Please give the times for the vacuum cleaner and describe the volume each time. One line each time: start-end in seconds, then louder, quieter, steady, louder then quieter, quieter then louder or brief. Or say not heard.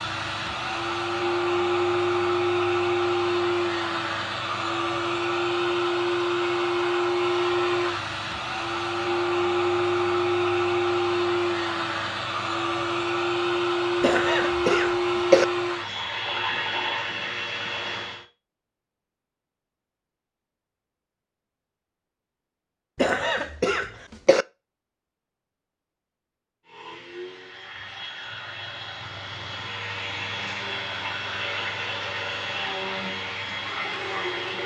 0.0-18.2 steady
26.6-34.6 louder.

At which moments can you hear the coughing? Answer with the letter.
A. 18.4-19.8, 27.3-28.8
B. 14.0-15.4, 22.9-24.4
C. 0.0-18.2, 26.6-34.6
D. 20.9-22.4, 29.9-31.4
B.